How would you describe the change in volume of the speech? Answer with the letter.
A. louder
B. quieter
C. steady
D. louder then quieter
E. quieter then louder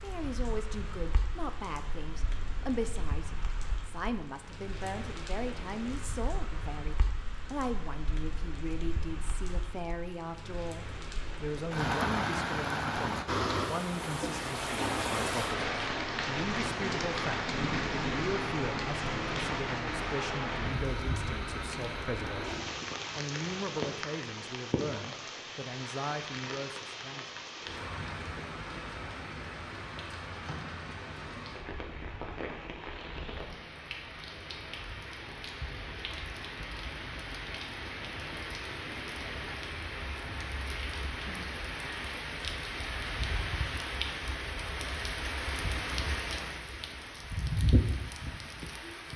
C.